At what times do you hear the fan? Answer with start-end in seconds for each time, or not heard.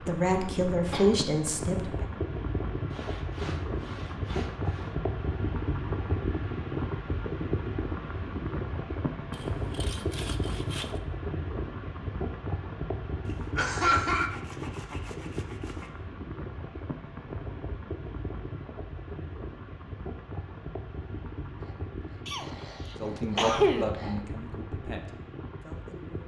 0.0-26.2.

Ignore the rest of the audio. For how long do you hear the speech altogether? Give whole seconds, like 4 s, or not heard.
5 s.